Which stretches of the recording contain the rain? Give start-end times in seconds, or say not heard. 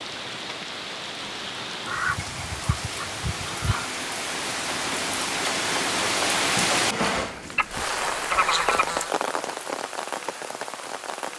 0.0-11.3.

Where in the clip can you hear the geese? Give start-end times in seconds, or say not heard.
1.9-3.9, 7.5-9.1.